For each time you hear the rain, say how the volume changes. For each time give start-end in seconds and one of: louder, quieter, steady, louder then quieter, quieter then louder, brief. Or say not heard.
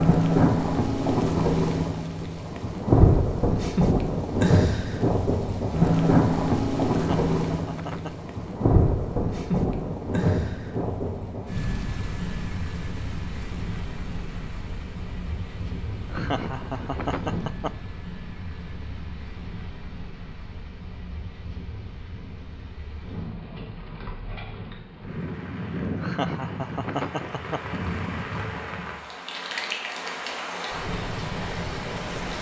0.0-32.3 quieter then louder.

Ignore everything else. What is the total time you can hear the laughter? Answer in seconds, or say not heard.
5 s.